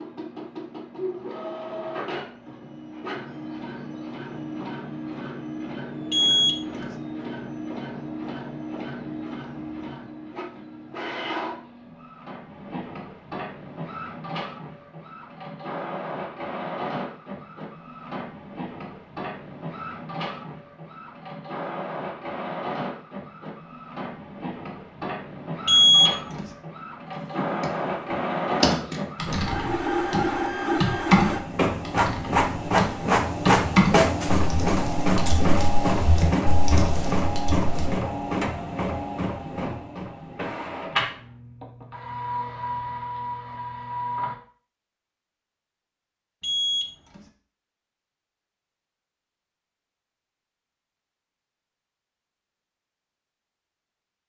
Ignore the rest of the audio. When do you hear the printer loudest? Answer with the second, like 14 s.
34 s.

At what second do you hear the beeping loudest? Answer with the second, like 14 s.
26 s.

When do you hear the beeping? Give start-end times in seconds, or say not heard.
6.1-7.0, 25.6-26.5, 46.4-47.2.